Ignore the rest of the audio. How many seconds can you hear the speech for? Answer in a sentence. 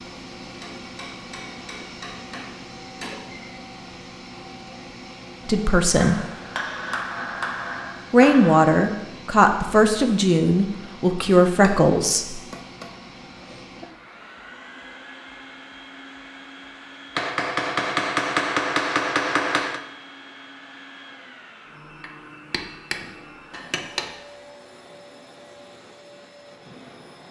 You can hear the speech for 5 seconds altogether.